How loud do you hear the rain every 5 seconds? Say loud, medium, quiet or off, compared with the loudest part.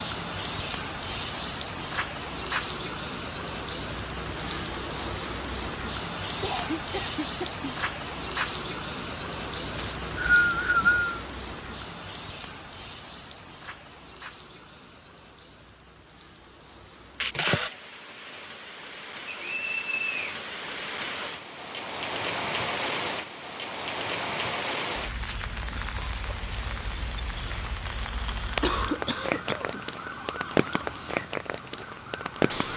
loud, loud, medium, quiet, loud, loud, loud.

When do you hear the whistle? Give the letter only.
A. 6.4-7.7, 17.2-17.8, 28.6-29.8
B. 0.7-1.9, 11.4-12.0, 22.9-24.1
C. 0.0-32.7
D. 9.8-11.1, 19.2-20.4
D.